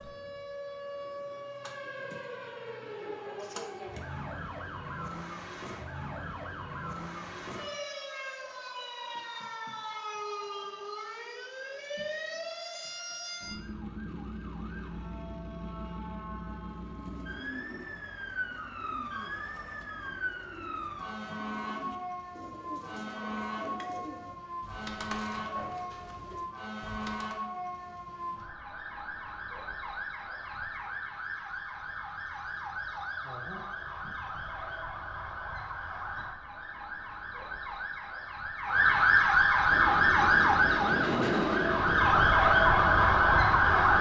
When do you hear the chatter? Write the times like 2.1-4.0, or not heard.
not heard.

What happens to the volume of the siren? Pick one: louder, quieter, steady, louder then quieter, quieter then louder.
louder.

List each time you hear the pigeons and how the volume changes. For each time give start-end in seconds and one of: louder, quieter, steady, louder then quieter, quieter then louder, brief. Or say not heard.
16.8-27.4 steady.